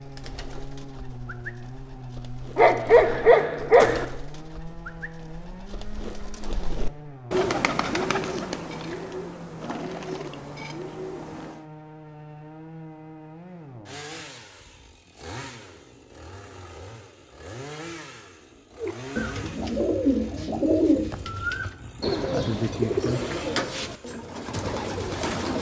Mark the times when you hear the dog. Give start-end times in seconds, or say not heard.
2.5-4.0.